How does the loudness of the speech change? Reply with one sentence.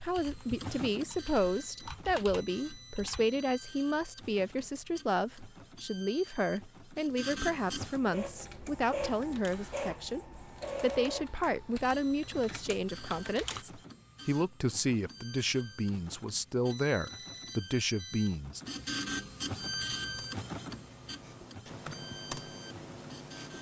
The volume of the speech stays about the same.